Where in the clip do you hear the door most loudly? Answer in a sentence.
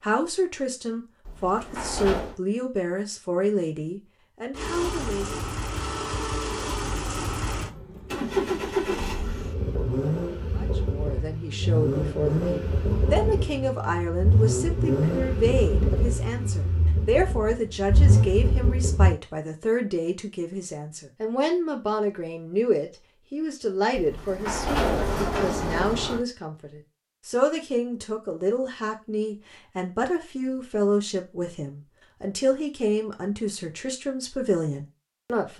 The volume of the door peaks at 25 seconds.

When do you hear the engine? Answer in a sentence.
The engine can be heard from 4.5 to 19.1 s.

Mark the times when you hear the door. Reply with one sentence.
The door can be heard from 1.2 to 2.4 s and from 23.9 to 26.2 s.